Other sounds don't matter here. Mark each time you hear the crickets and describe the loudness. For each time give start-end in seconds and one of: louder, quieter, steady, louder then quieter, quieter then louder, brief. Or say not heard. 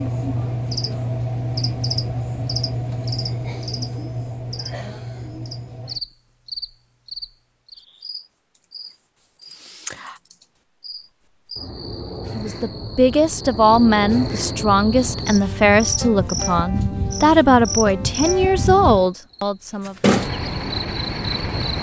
0.0-21.7 quieter then louder.